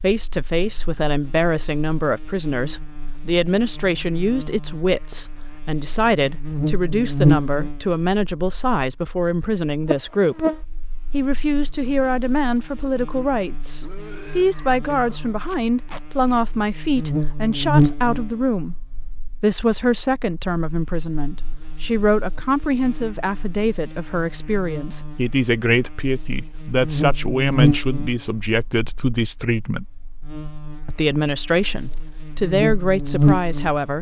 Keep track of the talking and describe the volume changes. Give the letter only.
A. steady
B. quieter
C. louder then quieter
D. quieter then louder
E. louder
A.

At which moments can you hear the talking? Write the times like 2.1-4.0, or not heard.
0.0-10.4, 11.1-18.8, 19.4-29.9, 30.9-33.9.